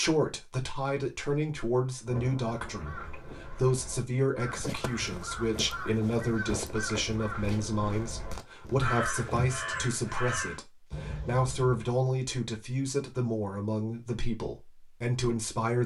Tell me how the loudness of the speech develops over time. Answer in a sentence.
The volume of the speech stays about the same.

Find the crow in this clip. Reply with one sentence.
The crow can be heard from 2.6 to 11.9 s.